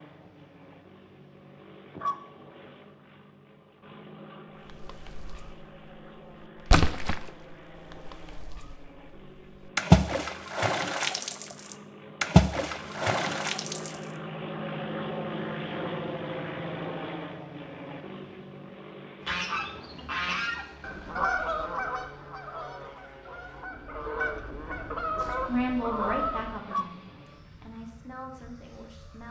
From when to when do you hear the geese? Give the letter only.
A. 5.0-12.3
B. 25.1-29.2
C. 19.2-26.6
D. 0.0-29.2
C.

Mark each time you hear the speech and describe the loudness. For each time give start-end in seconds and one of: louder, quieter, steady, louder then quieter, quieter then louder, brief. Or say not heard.
25.1-29.2 quieter.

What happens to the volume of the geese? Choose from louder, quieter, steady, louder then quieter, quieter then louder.
quieter then louder.